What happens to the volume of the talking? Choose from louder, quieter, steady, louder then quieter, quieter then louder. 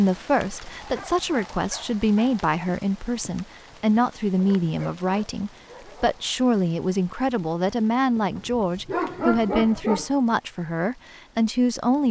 steady.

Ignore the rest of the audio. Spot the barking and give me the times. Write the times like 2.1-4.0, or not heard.
0.8-2.5, 4.3-6.2, 8.2-10.1.